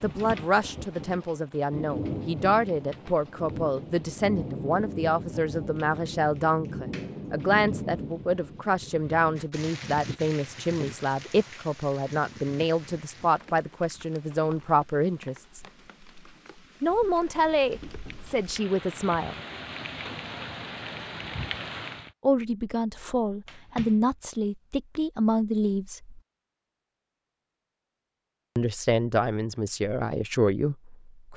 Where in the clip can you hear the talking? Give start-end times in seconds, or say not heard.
0.0-15.6, 16.8-19.4, 22.2-26.2, 28.6-31.3.